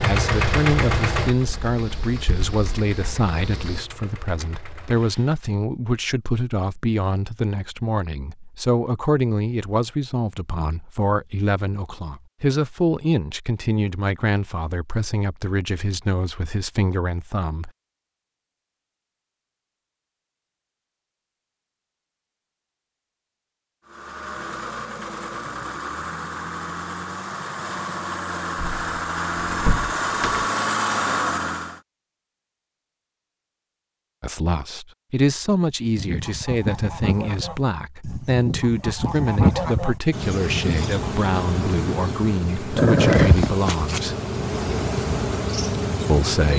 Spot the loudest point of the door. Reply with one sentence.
The volume of the door peaks at 30 seconds.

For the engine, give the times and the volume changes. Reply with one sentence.
You can hear the engine from 0.0 to 5.5 s, getting quieter; and from 23.9 to 31.8 s, getting louder.